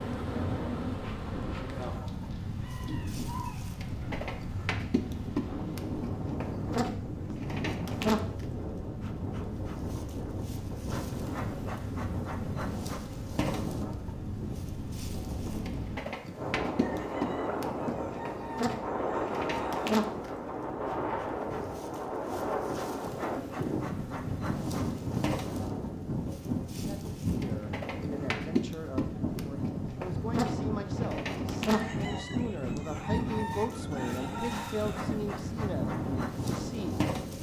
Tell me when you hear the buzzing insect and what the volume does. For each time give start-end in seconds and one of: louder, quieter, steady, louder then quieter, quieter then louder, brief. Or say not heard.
0.0-37.3 steady.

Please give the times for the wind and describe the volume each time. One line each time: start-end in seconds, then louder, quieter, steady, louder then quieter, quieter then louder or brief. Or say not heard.
0.0-37.3 steady.